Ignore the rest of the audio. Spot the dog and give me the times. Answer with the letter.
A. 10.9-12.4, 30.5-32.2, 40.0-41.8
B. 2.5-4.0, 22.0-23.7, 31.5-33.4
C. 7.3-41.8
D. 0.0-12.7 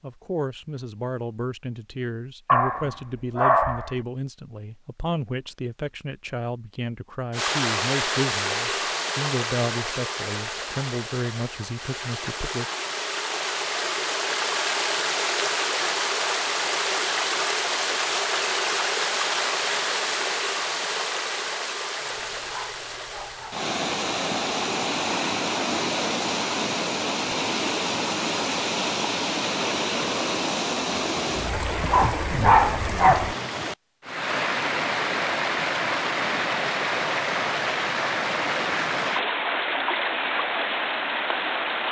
B.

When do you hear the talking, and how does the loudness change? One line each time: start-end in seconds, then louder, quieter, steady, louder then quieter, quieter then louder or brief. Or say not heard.
0.0-12.7 steady.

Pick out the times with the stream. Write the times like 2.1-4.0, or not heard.
7.3-41.8.